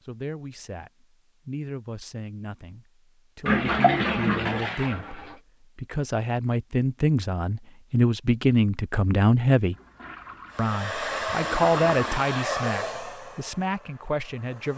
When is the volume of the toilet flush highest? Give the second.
4 s.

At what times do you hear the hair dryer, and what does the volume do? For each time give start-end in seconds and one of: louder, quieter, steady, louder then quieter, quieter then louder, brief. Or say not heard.
10.5-14.7 quieter.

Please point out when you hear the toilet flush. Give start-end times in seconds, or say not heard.
3.5-5.3, 9.8-12.2.